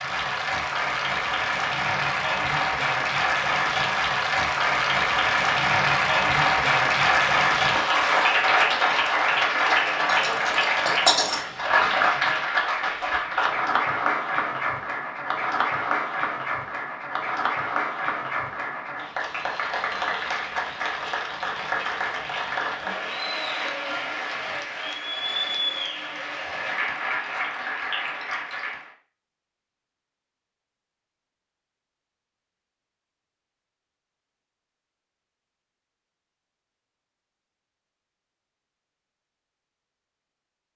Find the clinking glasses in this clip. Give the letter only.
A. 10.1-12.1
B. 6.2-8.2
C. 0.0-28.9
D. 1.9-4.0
A.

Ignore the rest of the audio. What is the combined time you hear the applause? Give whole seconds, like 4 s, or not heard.
29 s.